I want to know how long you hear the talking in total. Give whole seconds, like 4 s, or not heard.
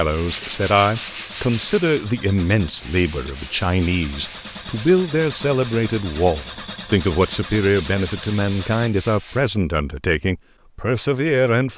12 s.